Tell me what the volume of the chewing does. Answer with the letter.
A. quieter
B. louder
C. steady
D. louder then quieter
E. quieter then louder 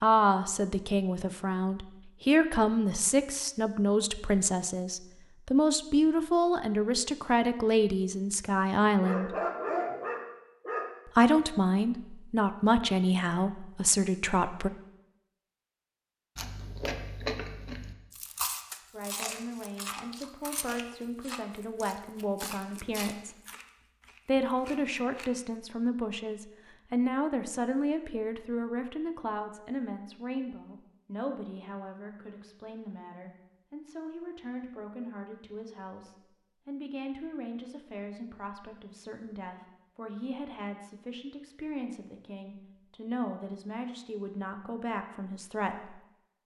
A.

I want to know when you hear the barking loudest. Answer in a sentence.
The loudest moment of the barking is at 10 seconds.